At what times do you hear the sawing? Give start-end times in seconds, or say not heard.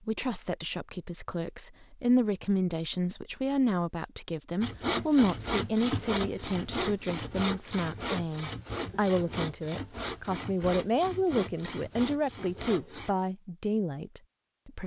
4.6-13.2.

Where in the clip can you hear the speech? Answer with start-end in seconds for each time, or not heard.
0.1-14.8.